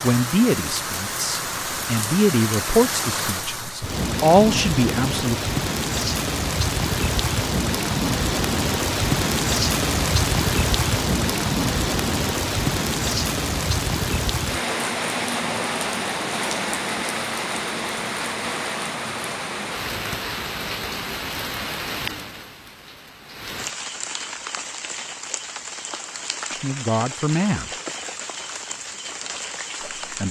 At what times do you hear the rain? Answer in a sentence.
The rain can be heard from 0.0 to 30.2 s.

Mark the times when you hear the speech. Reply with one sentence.
The speech can be heard from 0.0 to 5.3 s and from 26.5 to 27.6 s.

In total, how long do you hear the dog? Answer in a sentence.
The dog can't be heard in this clip.